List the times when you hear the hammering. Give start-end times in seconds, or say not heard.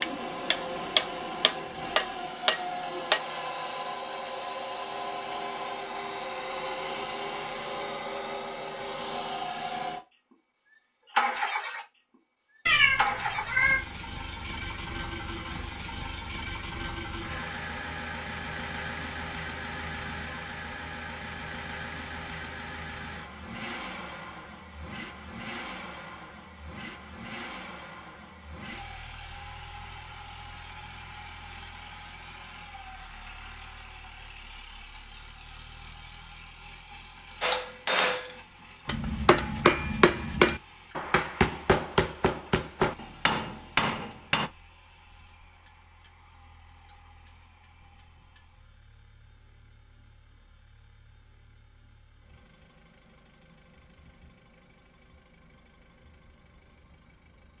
0.0-3.2, 37.4-44.5.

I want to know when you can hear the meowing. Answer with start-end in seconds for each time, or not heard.
12.7-13.8.